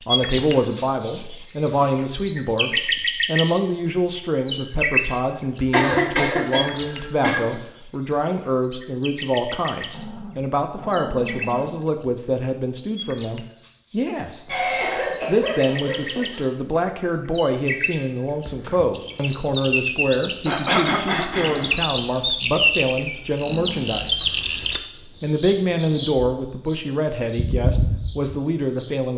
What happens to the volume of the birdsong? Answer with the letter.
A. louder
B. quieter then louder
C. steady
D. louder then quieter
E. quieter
B.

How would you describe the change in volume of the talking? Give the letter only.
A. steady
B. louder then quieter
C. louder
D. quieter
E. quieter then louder
A.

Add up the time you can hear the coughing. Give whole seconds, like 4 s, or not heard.
5 s.